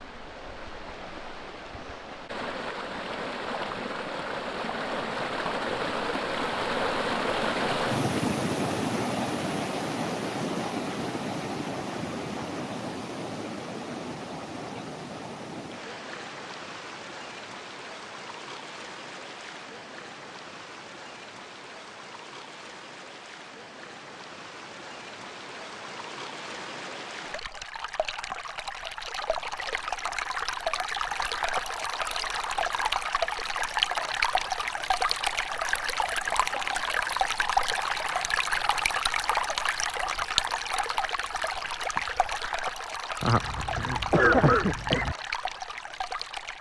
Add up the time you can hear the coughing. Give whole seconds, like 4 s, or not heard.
2 s.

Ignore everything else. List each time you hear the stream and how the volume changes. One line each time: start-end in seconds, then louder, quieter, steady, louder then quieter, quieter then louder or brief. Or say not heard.
0.0-46.5 quieter then louder.